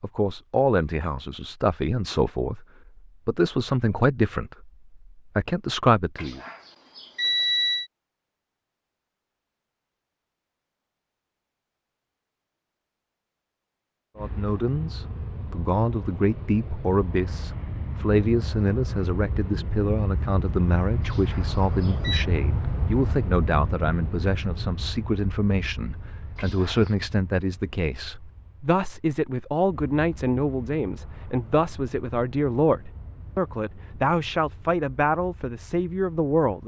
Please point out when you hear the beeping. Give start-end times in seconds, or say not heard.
6.2-7.8, 21.0-22.2, 26.4-26.9.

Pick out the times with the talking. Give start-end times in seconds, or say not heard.
0.0-2.6, 3.2-6.4, 14.2-36.6.